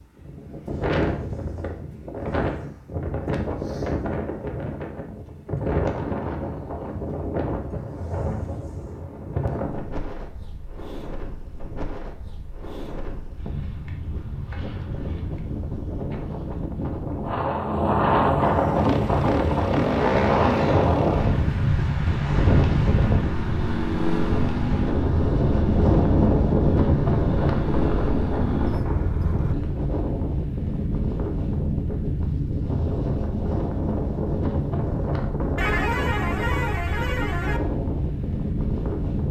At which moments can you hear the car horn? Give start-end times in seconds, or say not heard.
35.5-37.6.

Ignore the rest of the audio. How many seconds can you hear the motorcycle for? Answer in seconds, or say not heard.
11 s.